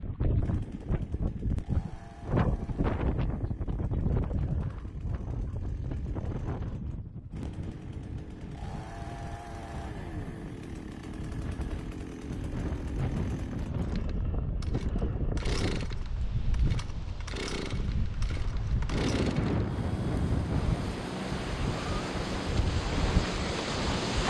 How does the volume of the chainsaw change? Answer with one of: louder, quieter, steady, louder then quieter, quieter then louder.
louder.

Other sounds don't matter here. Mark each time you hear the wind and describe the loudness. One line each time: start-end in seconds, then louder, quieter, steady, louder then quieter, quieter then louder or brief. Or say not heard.
0.0-24.2 quieter then louder.